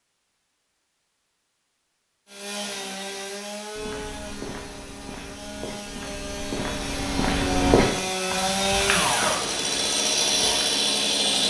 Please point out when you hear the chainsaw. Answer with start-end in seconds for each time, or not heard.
2.2-11.4.